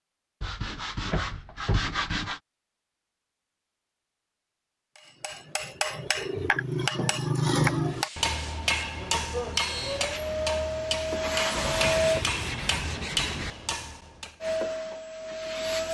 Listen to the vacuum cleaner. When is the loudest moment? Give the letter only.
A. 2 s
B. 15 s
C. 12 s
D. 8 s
C.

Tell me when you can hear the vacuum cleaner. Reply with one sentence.
You can hear the vacuum cleaner from 9.6 to 12.2 s and from 14.4 to 15.8 s.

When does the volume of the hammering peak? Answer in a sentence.
The loudest moment of the hammering is at 8 seconds.